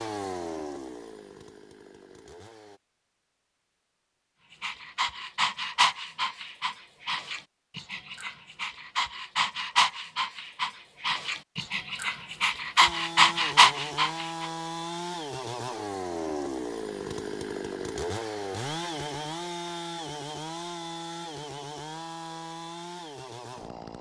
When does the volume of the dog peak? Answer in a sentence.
The loudest moment of the dog is at 14 seconds.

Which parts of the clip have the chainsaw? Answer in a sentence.
The chainsaw can be heard from 0.0 to 2.8 s and from 12.8 to 23.9 s.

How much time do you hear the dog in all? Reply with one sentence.
The dog can be heard for 10 seconds in total.